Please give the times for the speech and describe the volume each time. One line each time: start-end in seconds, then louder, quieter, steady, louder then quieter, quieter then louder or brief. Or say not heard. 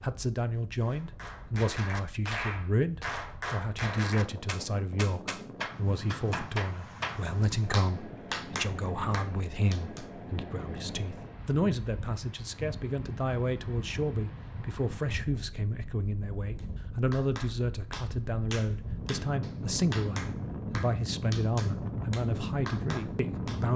0.0-23.7 steady.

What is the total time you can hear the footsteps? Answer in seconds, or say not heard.
not heard.